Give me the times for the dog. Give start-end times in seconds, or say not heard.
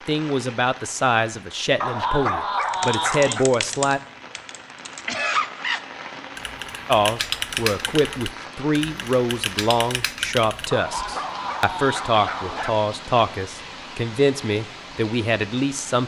1.8-3.5, 10.7-12.7.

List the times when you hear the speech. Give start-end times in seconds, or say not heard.
0.1-4.0, 6.8-16.0.